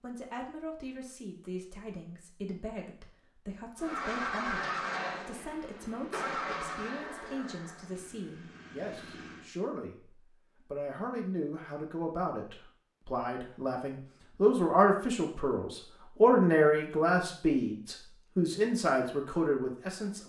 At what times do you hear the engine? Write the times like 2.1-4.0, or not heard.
3.8-9.5.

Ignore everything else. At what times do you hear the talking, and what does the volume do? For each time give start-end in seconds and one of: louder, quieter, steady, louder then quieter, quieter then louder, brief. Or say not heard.
0.0-20.2 louder.